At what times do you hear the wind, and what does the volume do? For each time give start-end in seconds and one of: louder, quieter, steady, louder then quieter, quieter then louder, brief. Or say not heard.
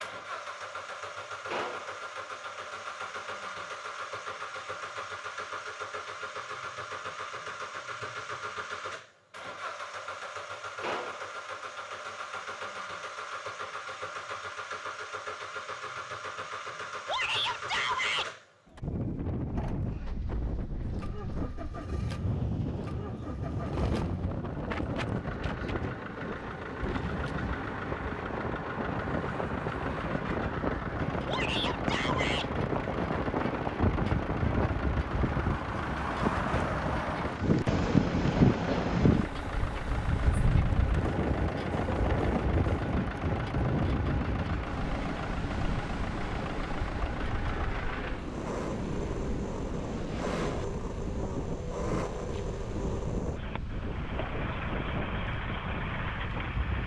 18.8-56.8 louder then quieter.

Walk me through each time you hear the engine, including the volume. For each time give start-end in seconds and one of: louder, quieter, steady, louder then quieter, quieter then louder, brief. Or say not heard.
0.0-56.8 steady.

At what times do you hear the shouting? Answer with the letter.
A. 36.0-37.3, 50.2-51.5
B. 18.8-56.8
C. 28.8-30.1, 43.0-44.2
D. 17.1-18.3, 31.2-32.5
D.